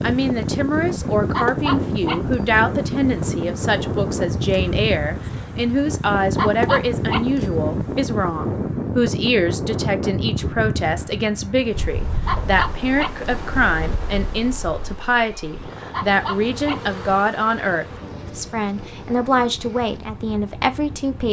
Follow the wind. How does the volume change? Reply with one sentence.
The loudness of the wind goes down.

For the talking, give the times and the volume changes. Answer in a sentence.
The talking can be heard from 0.0 to 21.2 s, at a steady volume.